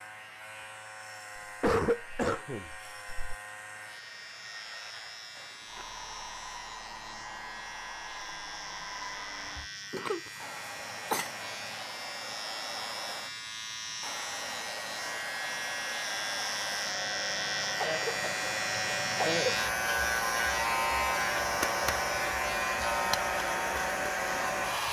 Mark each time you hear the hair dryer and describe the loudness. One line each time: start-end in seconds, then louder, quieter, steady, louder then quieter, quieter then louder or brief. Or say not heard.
0.0-24.8 louder.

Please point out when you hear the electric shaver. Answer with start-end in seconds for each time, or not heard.
0.0-24.8.